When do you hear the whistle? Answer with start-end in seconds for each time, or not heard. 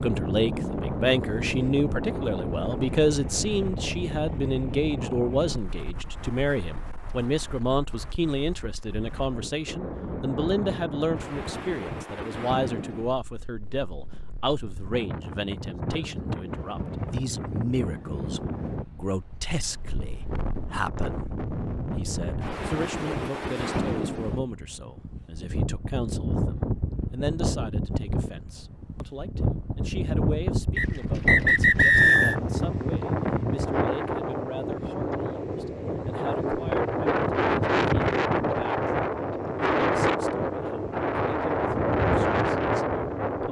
30.8-32.4.